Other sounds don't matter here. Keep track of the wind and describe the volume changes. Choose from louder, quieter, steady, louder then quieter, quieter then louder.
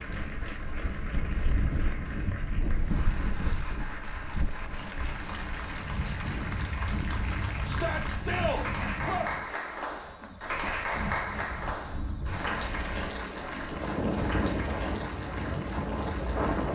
quieter then louder.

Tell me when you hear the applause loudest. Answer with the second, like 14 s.
11 s.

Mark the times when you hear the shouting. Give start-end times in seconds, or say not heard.
7.7-9.2.